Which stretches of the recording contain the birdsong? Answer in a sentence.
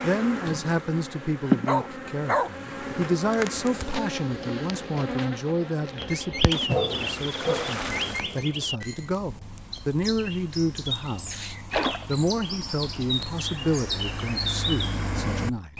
You can hear the birdsong from 6.0 to 15.7 s.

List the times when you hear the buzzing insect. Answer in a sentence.
The buzzing insect can be heard from 0.0 to 8.2 s.